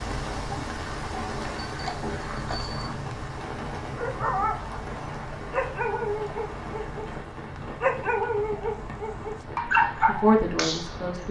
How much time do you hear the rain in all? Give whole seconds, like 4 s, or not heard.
11 s.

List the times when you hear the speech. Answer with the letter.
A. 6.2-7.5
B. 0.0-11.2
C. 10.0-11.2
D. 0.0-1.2
C.